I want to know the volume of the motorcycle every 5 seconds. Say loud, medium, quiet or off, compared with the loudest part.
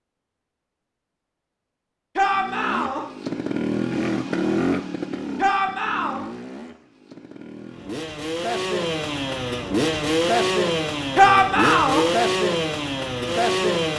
loud, medium, loud.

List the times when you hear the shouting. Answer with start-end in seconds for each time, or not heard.
2.1-3.0, 5.3-6.2, 11.2-12.1.